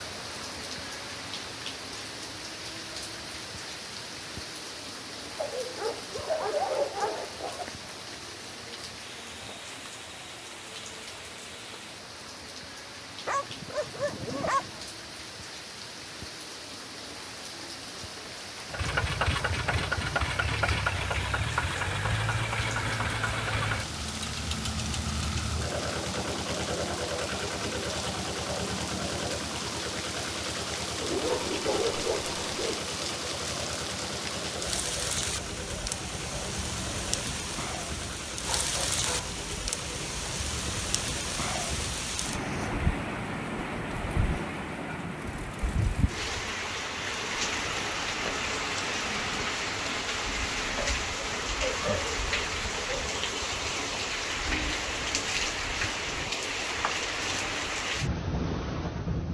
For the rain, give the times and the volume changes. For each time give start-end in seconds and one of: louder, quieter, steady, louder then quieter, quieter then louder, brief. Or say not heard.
0.0-59.2 louder.